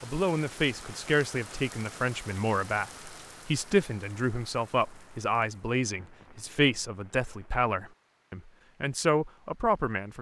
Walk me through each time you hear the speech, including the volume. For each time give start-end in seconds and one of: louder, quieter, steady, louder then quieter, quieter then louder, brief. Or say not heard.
0.0-10.1 steady.